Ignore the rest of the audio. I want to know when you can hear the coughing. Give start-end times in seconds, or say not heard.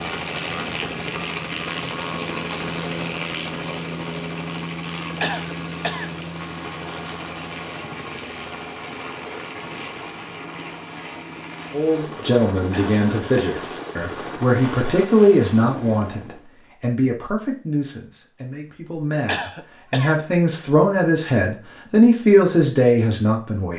5.2-6.1, 12.7-13.4, 19.2-20.2.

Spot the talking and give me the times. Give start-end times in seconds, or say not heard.
11.7-23.7.